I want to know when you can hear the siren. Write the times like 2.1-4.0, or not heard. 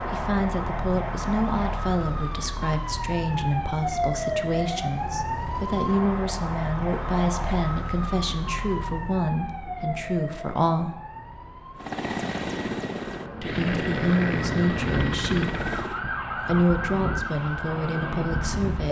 0.0-18.8.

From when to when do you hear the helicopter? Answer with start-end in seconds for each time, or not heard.
11.8-16.0.